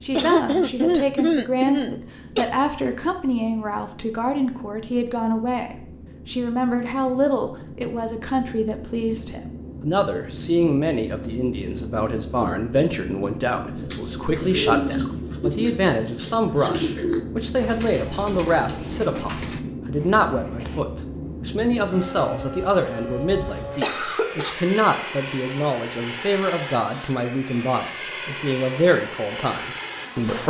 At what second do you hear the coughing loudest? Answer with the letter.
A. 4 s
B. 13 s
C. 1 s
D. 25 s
C.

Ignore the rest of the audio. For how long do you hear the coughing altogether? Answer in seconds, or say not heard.
3 s.